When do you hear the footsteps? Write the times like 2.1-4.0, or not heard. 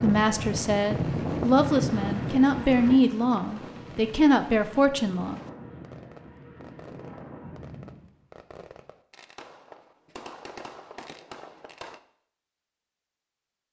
not heard.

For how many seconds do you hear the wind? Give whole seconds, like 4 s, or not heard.
8 s.